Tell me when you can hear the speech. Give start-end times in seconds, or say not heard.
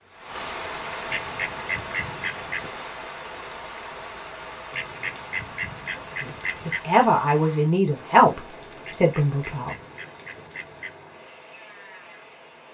6.0-9.8.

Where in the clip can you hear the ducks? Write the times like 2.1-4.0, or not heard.
1.1-2.7, 4.7-6.8, 8.8-11.0.